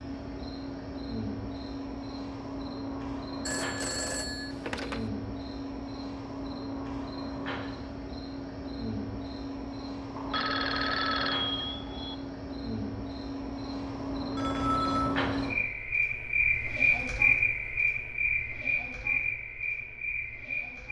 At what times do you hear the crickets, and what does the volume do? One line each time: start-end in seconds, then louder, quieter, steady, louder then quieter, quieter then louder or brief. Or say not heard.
0.0-20.8 louder.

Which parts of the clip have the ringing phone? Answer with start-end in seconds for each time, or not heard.
3.5-5.1, 10.2-12.2, 14.3-15.2.